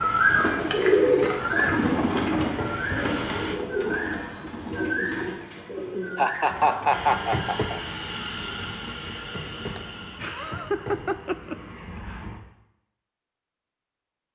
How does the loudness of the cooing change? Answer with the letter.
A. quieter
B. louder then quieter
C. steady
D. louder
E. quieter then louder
A.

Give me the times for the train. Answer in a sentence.
The train can be heard from 0.0 to 3.5 s and from 6.9 to 12.4 s.